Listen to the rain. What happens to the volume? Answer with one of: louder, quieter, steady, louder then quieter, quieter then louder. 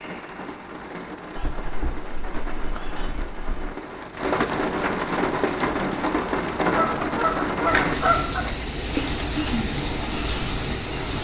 louder.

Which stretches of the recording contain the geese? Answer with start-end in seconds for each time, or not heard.
1.4-3.7, 6.7-8.6.